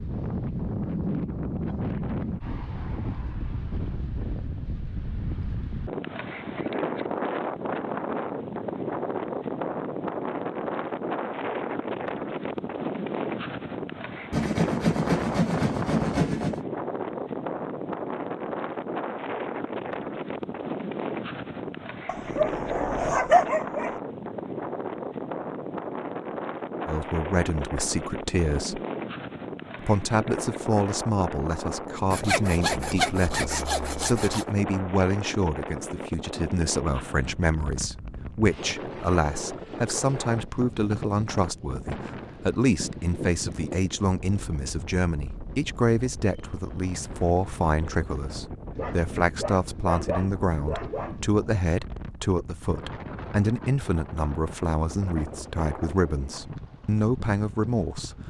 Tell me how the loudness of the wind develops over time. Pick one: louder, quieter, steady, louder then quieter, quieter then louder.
quieter.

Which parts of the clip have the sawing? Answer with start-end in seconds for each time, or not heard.
14.3-16.6, 32.1-34.5.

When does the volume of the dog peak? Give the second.
23 s.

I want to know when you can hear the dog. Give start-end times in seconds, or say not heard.
22.1-23.9, 48.8-51.4.